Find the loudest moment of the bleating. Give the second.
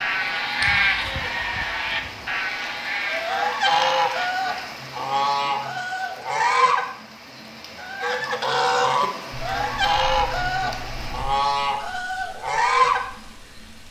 1 s.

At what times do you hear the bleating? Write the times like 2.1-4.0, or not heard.
0.0-4.8.